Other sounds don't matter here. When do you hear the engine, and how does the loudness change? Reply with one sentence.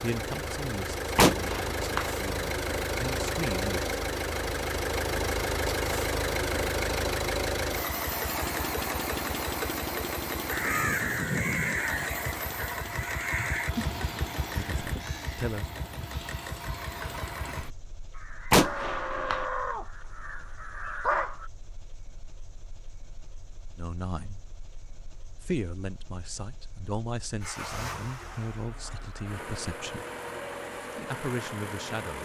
The engine can be heard from 0.0 to 32.1 s, getting quieter then louder.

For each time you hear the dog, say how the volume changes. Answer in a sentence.
The dog can't be heard in this clip.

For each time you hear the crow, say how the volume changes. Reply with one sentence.
The crow can be heard from 10.5 to 21.5 s, getting quieter then louder.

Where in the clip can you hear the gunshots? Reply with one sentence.
You can hear the gunshots from 1.1 to 2.1 s and from 18.5 to 19.4 s.